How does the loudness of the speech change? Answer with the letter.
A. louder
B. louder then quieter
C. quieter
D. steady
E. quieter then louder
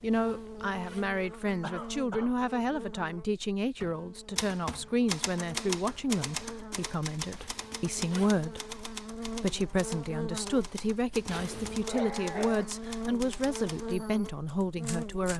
D.